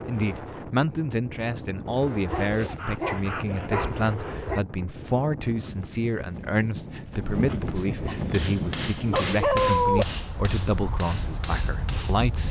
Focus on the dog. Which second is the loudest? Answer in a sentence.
The loudest moment of the dog is at 10 seconds.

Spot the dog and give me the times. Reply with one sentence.
You can hear the dog from 2.2 to 4.6 s and from 8.1 to 10.1 s.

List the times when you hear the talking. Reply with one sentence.
You can hear the talking from 0.1 to 12.4 s.